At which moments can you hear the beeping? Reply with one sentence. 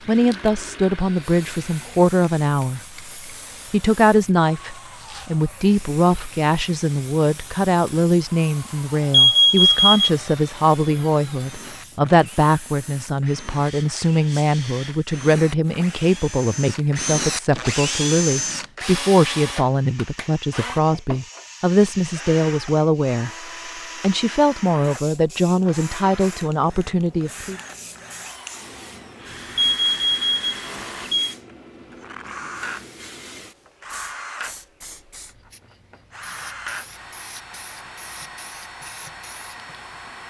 You can hear the beeping from 9.1 to 10.1 s and from 29.6 to 31.4 s.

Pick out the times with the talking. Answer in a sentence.
The talking can be heard from 0.1 to 2.8 s, from 3.7 to 23.3 s and from 24.0 to 27.6 s.